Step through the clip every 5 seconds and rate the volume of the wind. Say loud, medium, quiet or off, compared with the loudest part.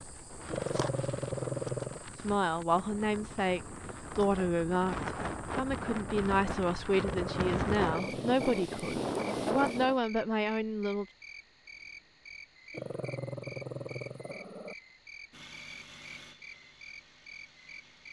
medium, loud, off, off.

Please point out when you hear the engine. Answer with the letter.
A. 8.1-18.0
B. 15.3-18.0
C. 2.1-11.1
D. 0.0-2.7
B.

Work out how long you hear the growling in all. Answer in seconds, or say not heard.
5 s.